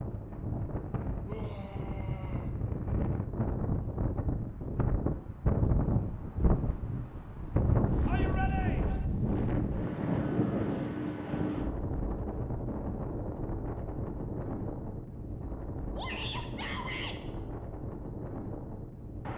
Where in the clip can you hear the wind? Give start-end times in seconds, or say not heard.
0.0-19.3.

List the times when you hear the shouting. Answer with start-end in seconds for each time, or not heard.
1.2-2.5, 8.1-9.0, 15.9-17.1.